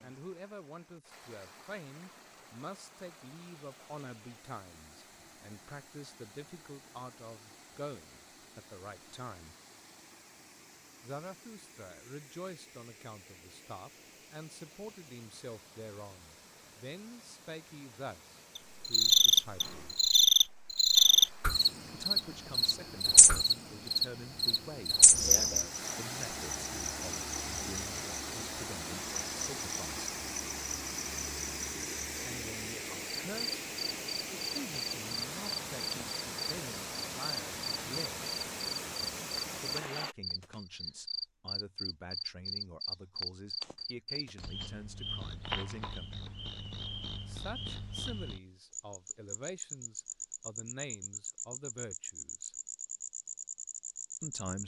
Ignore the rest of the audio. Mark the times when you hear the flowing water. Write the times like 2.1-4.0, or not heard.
0.0-40.1.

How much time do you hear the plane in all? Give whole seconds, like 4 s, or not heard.
not heard.